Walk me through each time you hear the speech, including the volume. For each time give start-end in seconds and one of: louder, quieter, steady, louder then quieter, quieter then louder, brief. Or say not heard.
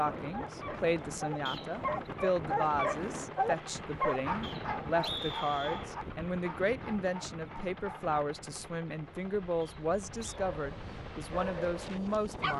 0.0-12.5 steady.